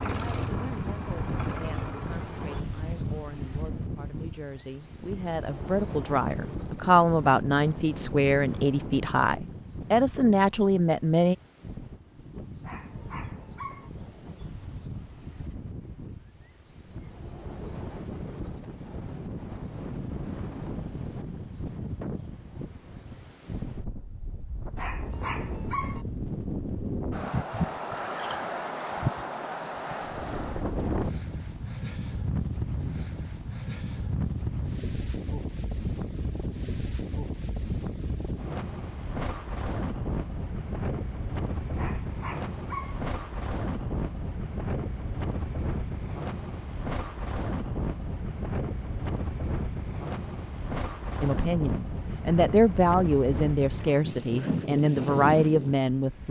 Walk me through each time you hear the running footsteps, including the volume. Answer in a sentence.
You can't hear the running footsteps here.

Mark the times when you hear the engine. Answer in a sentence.
The engine can be heard from 0.0 to 2.6 s.